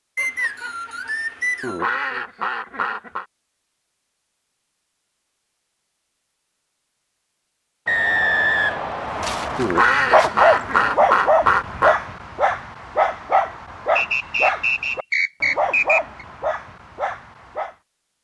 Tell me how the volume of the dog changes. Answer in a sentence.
The volume of the dog goes down.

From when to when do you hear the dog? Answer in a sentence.
The dog can be heard from 9.1 to 17.8 s.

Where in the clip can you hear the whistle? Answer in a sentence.
You can hear the whistle from 0.1 to 1.9 s, from 7.8 to 9.6 s and from 13.9 to 16.2 s.